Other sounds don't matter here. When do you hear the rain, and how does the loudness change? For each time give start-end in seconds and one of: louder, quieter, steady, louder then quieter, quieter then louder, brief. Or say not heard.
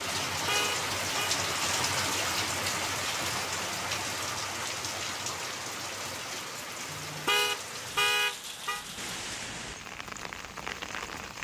0.0-11.3 quieter.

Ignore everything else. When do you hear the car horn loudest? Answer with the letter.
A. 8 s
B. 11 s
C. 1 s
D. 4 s
A.